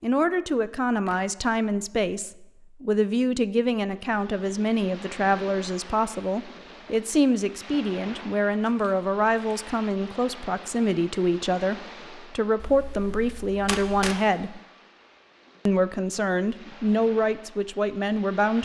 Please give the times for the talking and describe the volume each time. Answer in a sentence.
The talking can be heard from 0.0 to 14.6 s, at a steady volume; and briefly from 15.7 to 18.6 s.